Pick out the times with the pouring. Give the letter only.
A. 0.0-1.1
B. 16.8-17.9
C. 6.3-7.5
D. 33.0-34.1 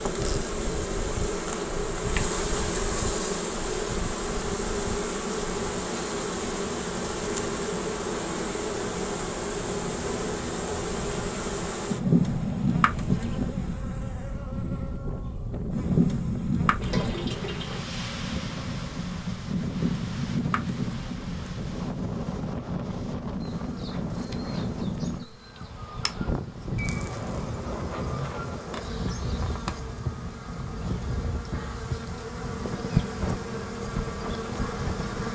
B.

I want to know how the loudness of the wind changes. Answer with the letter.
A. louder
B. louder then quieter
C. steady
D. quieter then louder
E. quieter
A.